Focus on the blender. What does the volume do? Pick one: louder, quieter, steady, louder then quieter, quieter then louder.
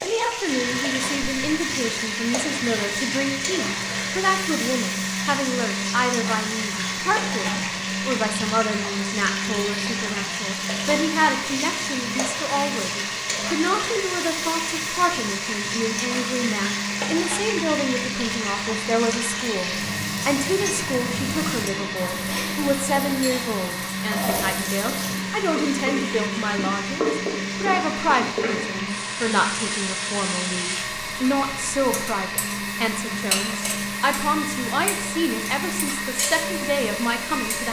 steady.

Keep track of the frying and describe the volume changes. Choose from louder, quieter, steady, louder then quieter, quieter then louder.
steady.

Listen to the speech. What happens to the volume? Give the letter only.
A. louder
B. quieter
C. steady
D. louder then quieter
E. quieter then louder
C.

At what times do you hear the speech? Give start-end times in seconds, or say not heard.
0.0-37.6.